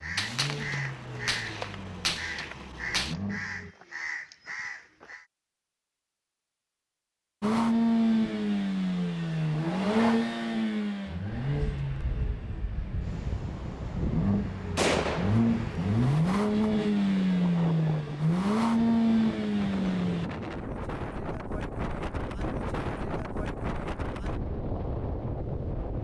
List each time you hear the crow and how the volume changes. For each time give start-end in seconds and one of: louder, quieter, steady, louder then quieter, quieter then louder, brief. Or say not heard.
0.0-5.2 steady.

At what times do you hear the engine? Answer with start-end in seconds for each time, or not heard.
0.0-3.8, 7.4-20.3.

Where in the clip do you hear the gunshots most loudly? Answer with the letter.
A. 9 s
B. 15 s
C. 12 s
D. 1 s
B.